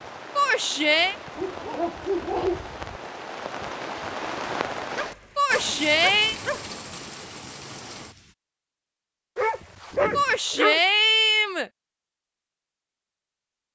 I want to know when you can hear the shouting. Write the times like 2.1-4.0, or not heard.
0.3-1.1, 5.3-6.3, 10.2-11.7.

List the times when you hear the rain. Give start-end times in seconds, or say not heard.
0.0-8.3.